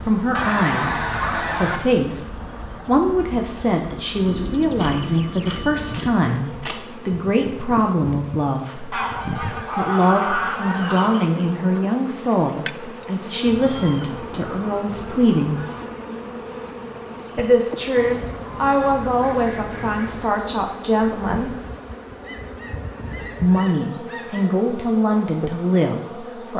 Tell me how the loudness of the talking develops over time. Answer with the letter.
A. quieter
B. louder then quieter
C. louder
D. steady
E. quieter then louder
D.